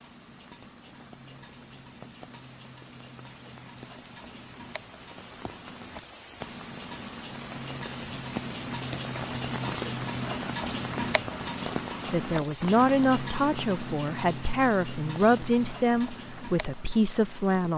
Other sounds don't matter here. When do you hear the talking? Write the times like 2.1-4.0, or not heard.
12.1-17.7.